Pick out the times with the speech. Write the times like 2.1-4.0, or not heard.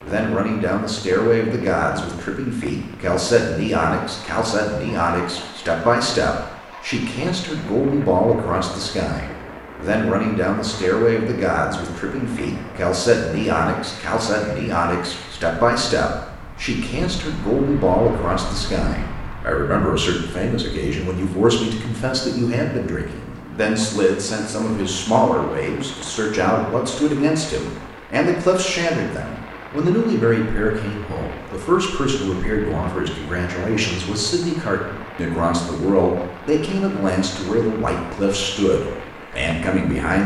0.0-40.2.